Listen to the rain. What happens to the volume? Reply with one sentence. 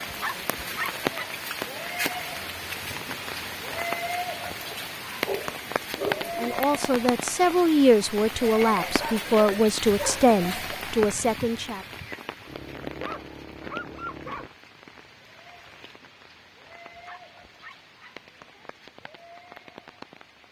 The volume of the rain goes down.